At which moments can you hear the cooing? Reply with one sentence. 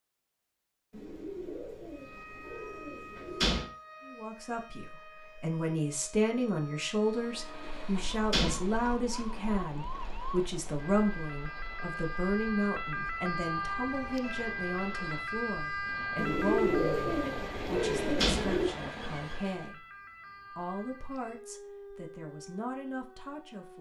You can hear the cooing from 0.9 to 3.6 s and from 16.1 to 18.7 s.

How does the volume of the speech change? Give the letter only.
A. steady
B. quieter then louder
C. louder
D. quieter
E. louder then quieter
D.